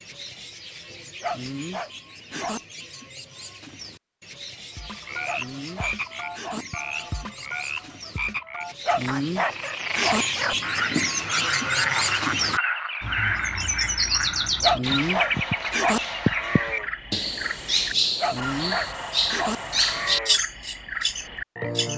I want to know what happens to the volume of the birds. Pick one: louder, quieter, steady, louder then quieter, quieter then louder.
louder.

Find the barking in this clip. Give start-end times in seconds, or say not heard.
1.2-2.6, 5.2-6.7, 8.8-10.2, 14.6-16.0, 18.2-19.6.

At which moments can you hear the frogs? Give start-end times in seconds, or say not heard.
4.8-21.9.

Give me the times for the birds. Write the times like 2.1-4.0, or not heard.
0.0-21.9.